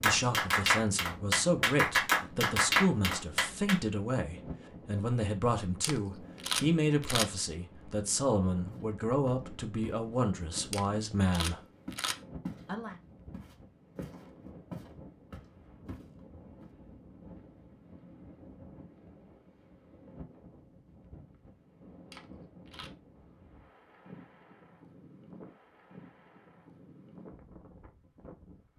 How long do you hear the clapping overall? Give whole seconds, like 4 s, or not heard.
4 s.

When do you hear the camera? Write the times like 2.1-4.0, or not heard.
5.8-7.3, 10.7-12.2, 22.1-22.9.